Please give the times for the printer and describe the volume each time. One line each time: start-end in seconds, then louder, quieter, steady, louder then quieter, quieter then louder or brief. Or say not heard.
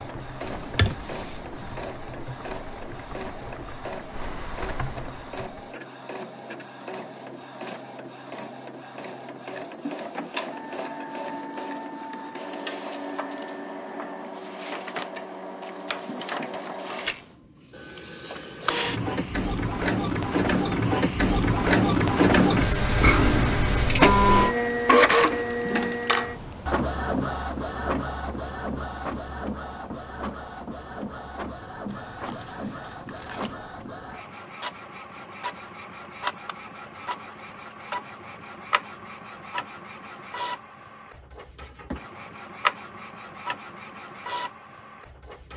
0.0-45.5 louder then quieter.